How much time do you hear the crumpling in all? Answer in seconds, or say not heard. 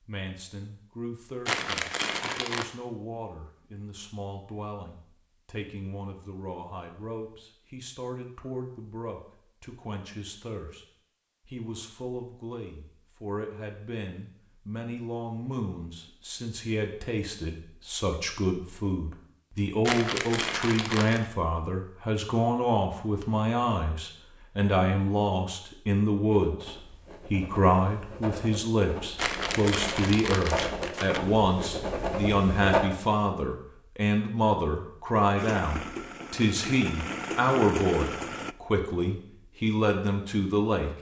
5 s.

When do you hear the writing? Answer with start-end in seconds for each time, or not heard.
26.3-32.9.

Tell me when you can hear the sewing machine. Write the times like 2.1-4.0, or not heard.
35.4-38.5.